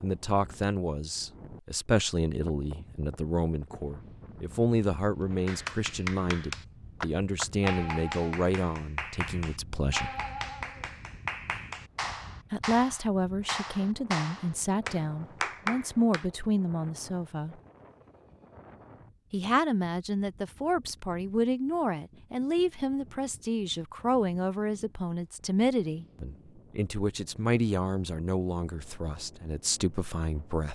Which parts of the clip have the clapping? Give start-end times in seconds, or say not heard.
5.5-16.2.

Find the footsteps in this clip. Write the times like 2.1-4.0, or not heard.
not heard.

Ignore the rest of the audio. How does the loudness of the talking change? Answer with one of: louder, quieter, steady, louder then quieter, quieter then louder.
steady.